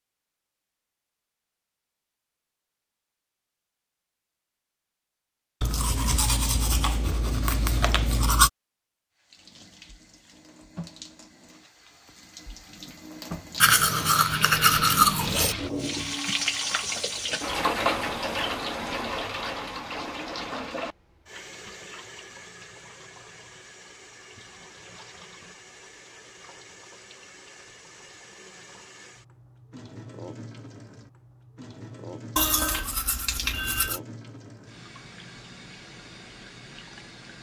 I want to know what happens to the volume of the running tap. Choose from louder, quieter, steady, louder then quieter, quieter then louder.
louder then quieter.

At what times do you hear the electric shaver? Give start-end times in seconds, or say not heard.
not heard.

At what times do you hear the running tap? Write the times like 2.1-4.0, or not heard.
9.2-37.3.